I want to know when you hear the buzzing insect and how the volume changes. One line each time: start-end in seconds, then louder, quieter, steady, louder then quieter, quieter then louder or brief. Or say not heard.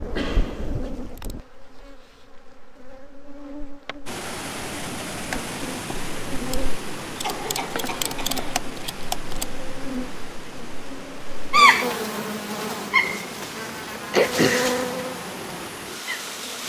0.0-16.6 louder then quieter.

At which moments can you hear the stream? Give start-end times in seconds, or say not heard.
4.0-16.6.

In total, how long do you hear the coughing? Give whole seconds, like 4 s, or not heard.
3 s.